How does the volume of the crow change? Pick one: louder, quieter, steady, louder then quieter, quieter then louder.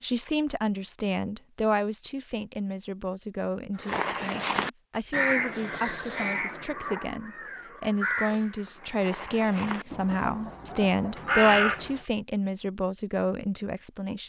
quieter then louder.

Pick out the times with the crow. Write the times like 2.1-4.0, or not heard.
3.8-11.9.